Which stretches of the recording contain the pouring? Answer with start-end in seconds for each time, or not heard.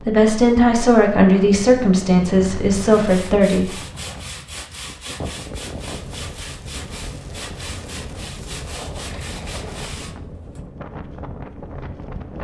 9.1-9.7.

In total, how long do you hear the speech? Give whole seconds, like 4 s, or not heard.
4 s.